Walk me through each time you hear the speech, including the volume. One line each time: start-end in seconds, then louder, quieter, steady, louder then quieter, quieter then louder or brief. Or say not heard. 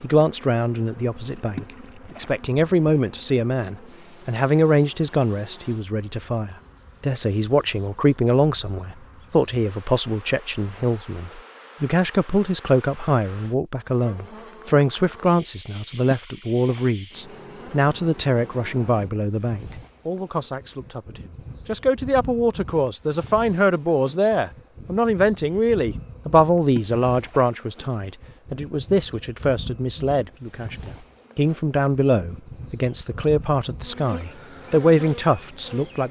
0.0-36.0 steady.